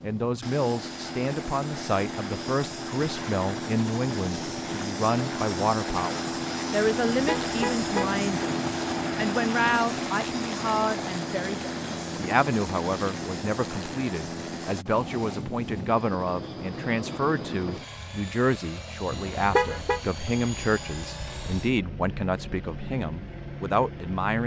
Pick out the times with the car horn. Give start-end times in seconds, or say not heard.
7.1-8.2, 19.1-20.0.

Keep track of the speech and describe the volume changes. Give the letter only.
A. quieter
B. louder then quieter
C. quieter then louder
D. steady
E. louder
D.